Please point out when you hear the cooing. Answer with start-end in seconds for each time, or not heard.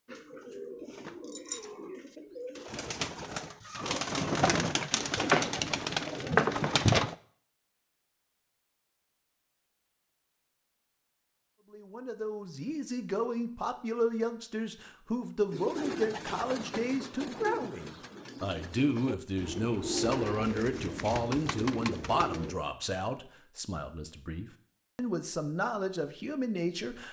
0.1-7.2, 15.5-22.6.